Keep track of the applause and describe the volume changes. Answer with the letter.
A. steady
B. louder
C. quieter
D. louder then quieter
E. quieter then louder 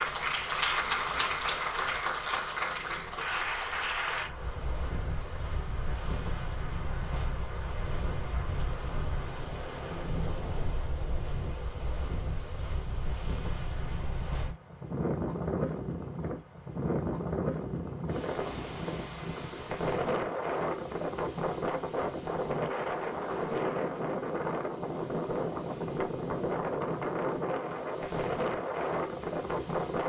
C.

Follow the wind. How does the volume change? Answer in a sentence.
The volume of the wind goes up.